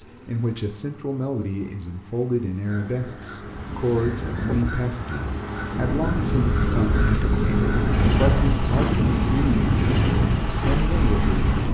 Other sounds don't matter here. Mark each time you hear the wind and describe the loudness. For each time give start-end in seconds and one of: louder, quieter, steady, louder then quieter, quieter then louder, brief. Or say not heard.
3.4-11.6 louder.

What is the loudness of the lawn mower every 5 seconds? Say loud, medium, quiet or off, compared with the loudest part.
quiet, loud, loud.